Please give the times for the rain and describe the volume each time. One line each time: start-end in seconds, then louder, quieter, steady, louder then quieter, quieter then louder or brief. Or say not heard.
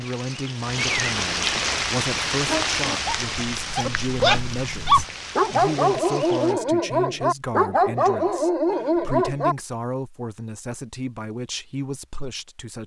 0.0-6.5 quieter.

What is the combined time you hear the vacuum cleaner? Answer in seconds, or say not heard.
not heard.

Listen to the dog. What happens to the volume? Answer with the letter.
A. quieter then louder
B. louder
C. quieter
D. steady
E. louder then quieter
B.